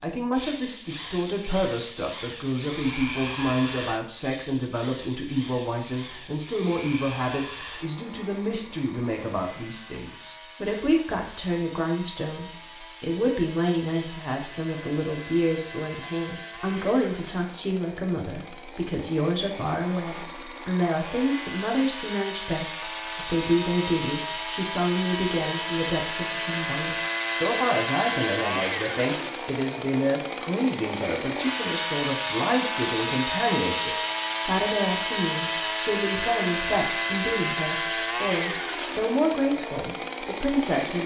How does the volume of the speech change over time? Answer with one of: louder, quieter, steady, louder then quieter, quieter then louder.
steady.